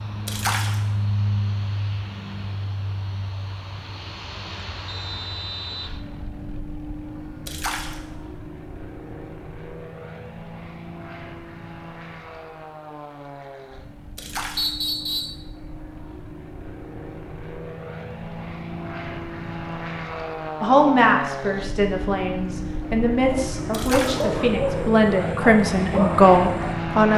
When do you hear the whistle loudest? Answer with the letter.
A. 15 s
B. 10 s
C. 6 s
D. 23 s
A.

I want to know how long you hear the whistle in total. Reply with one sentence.
You can hear the whistle for 2 seconds altogether.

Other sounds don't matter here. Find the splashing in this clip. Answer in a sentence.
You can hear the splashing from 0.2 to 0.8 s, from 7.5 to 8.0 s, from 14.2 to 14.7 s and from 23.7 to 24.2 s.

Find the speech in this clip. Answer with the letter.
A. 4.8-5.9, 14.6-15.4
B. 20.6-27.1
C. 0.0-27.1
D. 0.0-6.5
B.